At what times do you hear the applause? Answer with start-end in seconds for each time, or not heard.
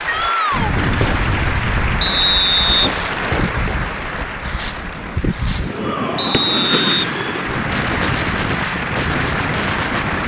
0.0-10.2.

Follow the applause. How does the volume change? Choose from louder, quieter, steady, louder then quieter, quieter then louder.
quieter then louder.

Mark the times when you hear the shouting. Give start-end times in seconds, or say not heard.
0.1-0.7, 5.7-7.5.